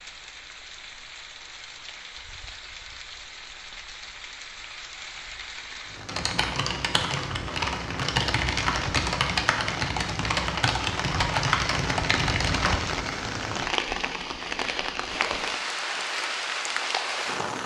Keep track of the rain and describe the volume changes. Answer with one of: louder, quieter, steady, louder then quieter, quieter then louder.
louder.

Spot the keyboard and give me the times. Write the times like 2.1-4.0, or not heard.
6.0-12.8.